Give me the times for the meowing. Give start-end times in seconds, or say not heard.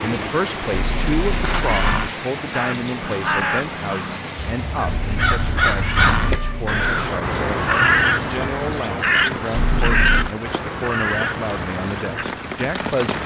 0.7-2.1, 4.8-6.8, 9.5-10.3.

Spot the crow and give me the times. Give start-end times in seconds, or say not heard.
2.5-12.2.